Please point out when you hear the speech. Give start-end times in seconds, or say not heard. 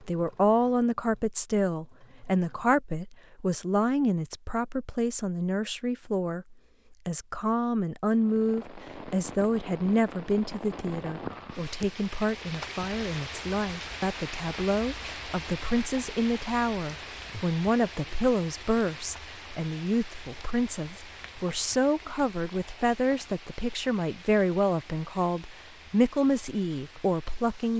0.0-27.7.